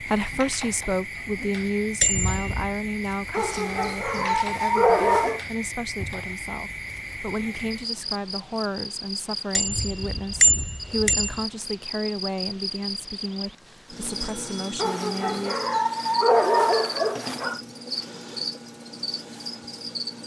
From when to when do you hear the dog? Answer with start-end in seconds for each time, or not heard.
3.3-5.4, 14.8-17.6.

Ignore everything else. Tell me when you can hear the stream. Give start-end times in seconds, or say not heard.
not heard.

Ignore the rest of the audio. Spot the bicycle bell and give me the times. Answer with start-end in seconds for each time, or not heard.
2.0-2.7, 9.6-11.4, 14.1-15.6.